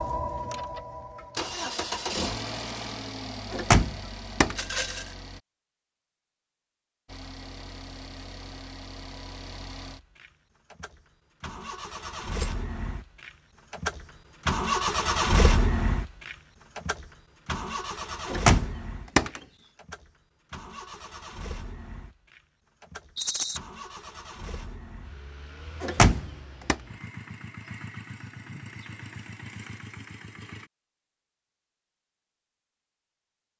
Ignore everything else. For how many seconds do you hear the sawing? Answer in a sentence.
The sawing can't be heard in this clip.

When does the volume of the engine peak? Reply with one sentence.
The loudest moment of the engine is at 15 seconds.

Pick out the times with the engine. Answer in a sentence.
The engine can be heard from 0.0 to 5.4 s and from 7.0 to 30.7 s.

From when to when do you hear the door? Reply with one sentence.
The door can be heard from 3.5 to 4.6 s, from 18.2 to 19.4 s and from 25.8 to 26.8 s.